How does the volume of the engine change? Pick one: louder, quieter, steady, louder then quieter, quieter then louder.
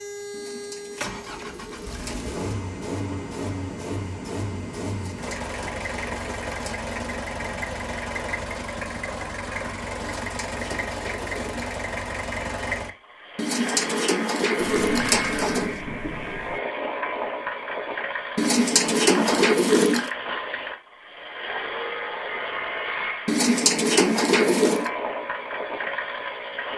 steady.